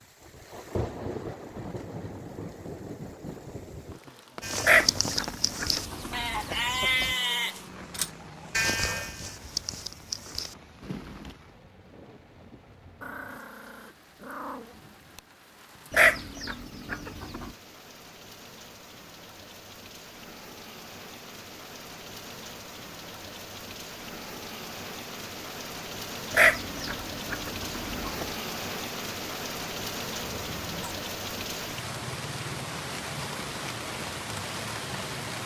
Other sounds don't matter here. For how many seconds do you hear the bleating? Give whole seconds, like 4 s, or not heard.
7 s.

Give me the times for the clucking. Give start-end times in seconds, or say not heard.
4.6-7.2, 15.9-17.5, 26.3-28.3.